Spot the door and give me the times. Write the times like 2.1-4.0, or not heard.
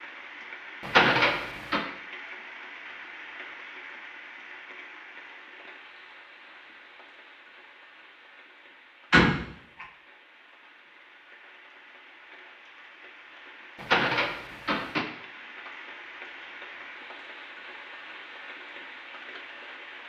0.8-1.9, 9.1-9.8, 13.8-15.1.